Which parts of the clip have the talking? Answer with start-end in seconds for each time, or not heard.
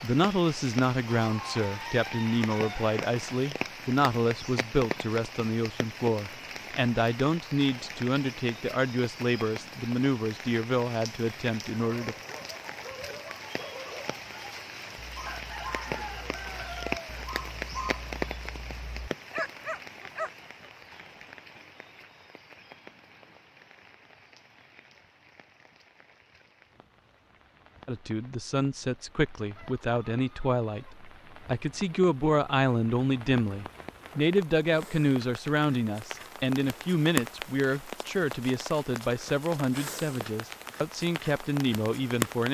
0.0-12.2, 27.9-42.4.